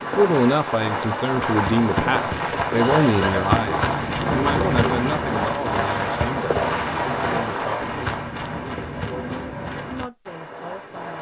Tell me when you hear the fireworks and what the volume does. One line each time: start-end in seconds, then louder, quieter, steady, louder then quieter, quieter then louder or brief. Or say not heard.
0.0-11.1 quieter.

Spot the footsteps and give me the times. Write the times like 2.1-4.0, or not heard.
1.4-10.1.